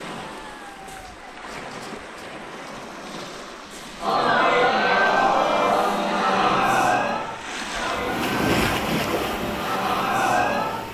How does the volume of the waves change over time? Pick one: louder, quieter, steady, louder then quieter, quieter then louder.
louder.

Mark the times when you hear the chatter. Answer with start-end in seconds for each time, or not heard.
4.0-10.8.